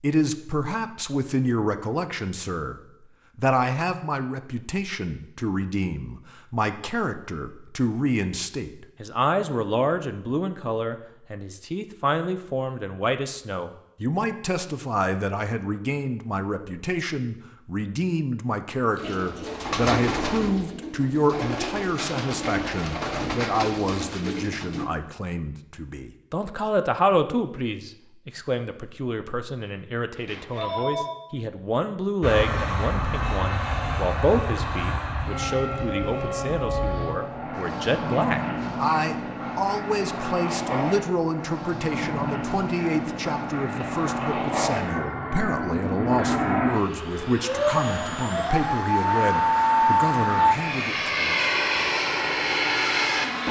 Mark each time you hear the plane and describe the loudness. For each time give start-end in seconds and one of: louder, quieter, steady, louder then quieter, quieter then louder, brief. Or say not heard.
32.2-53.4 louder.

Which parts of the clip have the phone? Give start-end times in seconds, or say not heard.
30.1-31.1.